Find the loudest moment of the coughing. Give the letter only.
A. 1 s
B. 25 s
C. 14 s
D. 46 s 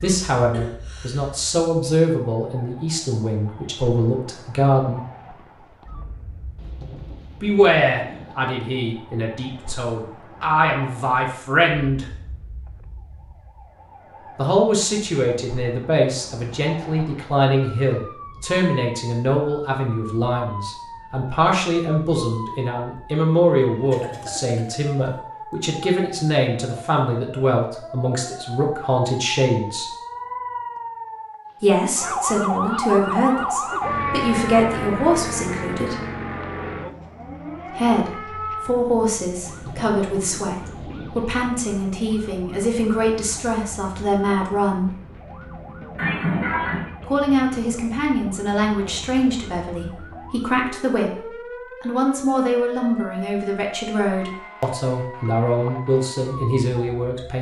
D.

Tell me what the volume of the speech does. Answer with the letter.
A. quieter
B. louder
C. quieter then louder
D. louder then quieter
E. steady
E.